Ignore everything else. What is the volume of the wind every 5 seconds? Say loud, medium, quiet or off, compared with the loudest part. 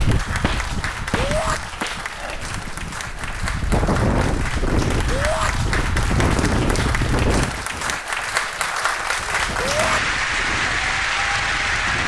loud, loud, medium.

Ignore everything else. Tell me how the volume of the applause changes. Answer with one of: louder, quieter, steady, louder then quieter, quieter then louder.
louder.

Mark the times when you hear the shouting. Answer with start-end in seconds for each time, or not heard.
1.1-1.6, 5.1-5.5, 9.6-10.0.